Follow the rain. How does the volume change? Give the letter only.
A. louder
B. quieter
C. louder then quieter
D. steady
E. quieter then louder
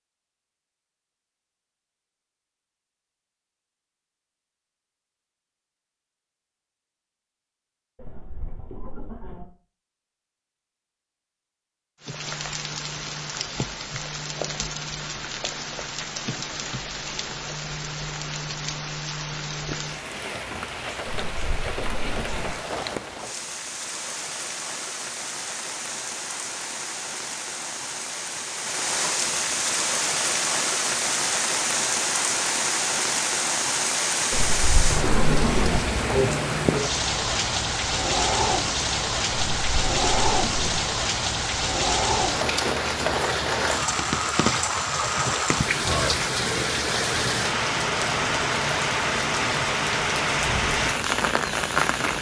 A.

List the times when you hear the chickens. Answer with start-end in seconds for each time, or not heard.
8.0-9.4, 21.1-22.5, 34.3-35.8, 39.5-40.8.